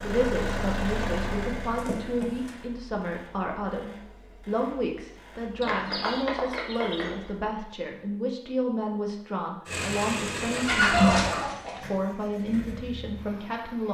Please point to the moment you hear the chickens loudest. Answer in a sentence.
The loudest moment of the chickens is at 11 seconds.